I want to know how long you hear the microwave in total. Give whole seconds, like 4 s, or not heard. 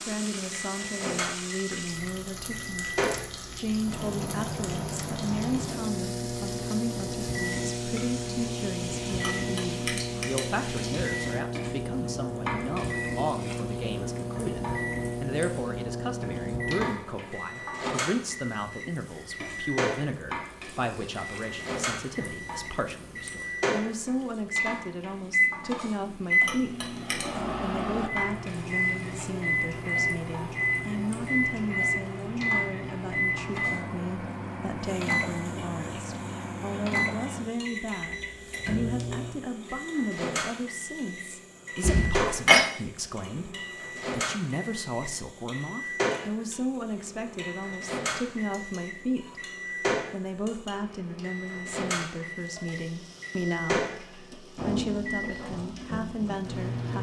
57 s.